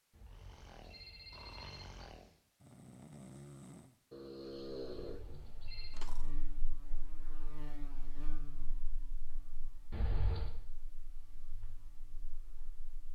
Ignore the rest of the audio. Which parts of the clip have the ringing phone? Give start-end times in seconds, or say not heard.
0.1-1.9, 4.9-6.0, 9.9-10.5.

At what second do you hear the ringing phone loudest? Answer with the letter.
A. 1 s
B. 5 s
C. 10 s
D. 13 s
C.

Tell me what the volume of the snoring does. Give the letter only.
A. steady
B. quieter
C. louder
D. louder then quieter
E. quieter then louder
C.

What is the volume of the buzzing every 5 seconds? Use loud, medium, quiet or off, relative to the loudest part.
off, loud, quiet.